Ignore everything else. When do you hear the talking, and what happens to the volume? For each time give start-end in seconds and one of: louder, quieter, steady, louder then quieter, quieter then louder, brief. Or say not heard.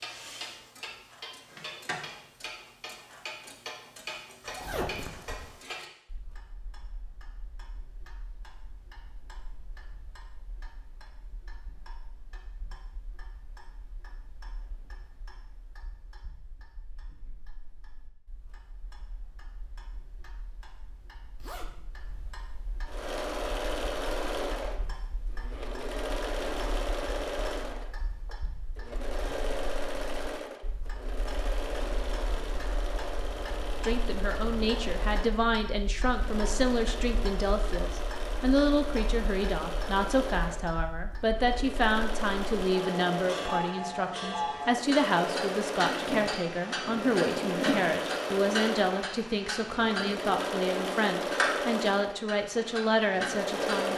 33.8-53.9 steady.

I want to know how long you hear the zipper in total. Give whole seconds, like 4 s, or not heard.
4 s.